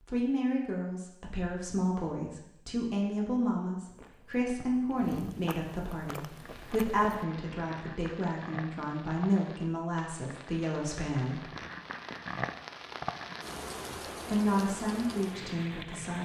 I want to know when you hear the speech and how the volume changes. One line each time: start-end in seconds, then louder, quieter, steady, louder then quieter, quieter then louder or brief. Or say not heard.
0.1-11.4 steady
14.2-16.2 brief.